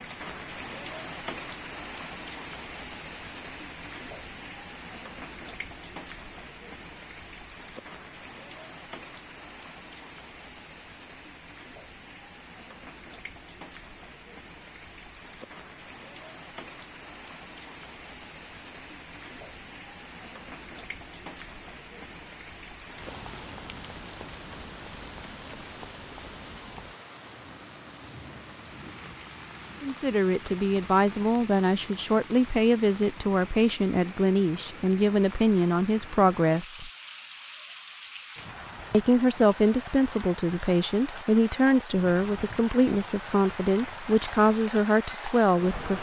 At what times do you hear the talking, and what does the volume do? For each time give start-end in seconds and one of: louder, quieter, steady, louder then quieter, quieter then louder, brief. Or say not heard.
29.8-36.9 steady
38.9-45.9 steady.